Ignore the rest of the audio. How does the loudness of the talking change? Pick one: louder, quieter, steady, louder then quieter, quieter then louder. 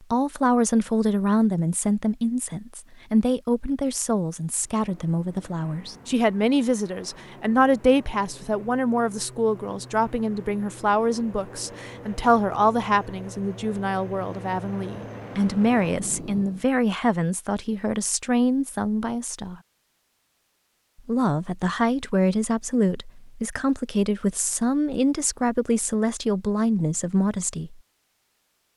steady.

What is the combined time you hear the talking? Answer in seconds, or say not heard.
26 s.